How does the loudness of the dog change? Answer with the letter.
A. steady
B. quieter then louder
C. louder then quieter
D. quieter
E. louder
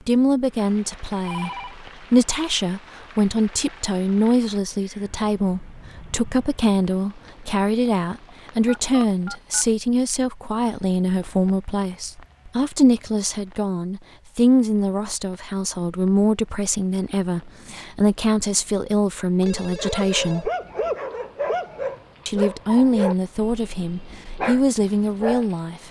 B.